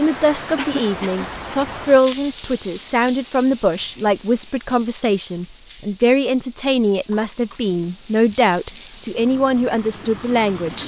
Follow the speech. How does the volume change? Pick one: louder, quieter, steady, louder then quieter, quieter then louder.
steady.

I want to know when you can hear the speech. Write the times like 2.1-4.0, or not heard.
0.0-10.8.